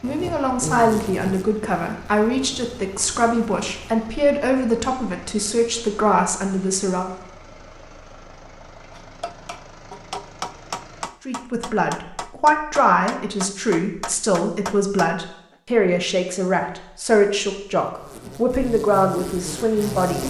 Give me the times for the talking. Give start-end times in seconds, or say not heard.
0.0-7.1, 11.2-20.2.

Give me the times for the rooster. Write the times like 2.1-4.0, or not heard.
not heard.